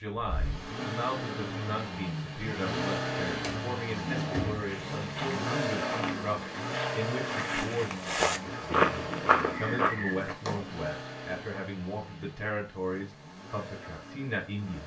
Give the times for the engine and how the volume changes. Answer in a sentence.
The engine can be heard from 0.1 to 14.8 s, getting quieter.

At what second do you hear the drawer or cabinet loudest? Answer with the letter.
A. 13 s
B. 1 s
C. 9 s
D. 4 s
D.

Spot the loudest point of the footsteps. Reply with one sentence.
The volume of the footsteps peaks at 9 seconds.